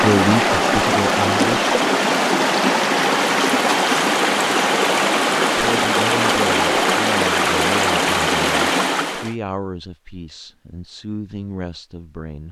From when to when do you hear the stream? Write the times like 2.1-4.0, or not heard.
0.0-9.3.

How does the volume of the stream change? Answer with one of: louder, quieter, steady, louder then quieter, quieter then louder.
steady.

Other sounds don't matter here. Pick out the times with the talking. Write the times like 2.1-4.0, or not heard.
0.0-1.6, 5.5-12.4.